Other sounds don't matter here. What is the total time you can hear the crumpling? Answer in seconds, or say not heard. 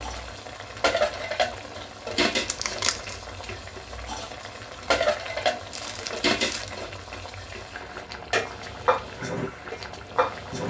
2 s.